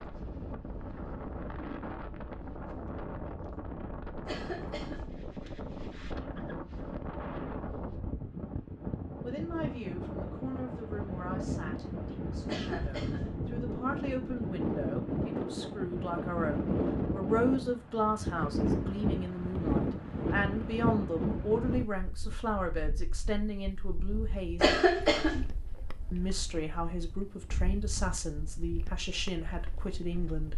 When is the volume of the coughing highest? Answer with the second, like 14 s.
25 s.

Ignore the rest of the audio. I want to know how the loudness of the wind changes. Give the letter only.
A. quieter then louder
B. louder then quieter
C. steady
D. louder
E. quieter
B.